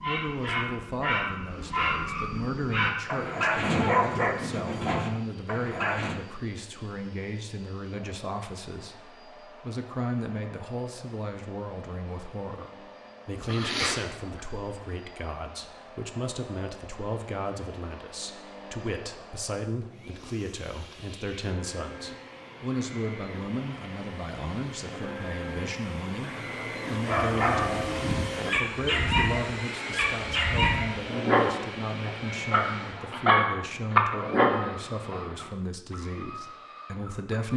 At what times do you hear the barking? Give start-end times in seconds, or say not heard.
0.0-6.2, 27.1-35.5.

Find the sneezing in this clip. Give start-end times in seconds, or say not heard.
13.3-14.4.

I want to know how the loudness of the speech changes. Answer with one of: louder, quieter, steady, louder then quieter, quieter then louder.
steady.